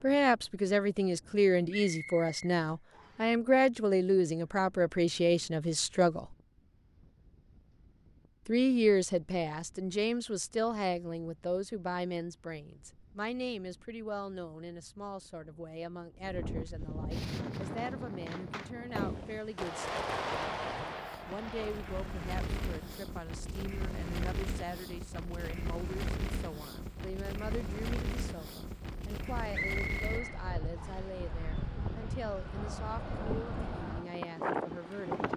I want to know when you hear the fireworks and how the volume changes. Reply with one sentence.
The fireworks can be heard from 17.1 to 23.0 s, getting louder then quieter.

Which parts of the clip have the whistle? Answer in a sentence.
The whistle can be heard from 1.7 to 3.3 s and from 29.5 to 31.1 s.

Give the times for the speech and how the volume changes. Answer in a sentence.
The speech can be heard from 0.0 to 6.3 s, at a steady volume; from 8.4 to 19.9 s, getting quieter; and from 21.2 to 35.2 s, at a steady volume.